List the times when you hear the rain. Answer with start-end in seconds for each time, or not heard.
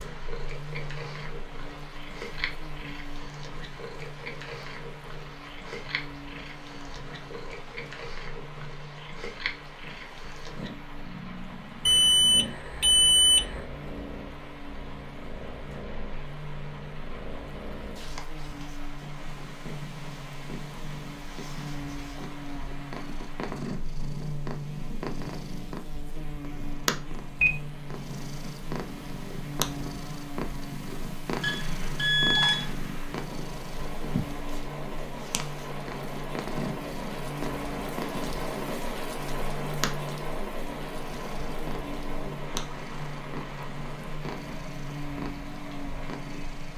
0.0-46.7.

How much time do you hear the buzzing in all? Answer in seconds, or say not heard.
47 s.